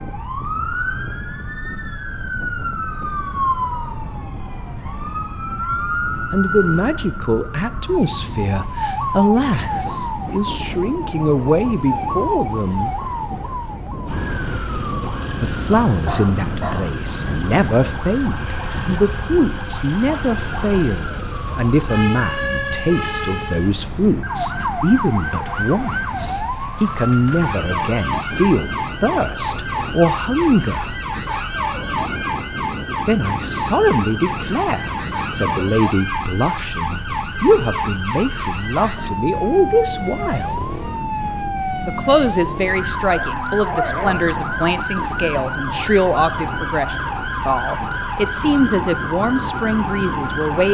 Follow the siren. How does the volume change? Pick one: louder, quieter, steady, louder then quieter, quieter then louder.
steady.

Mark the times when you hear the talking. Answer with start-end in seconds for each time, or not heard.
6.3-13.0, 15.4-30.9, 33.0-40.6, 41.9-50.7.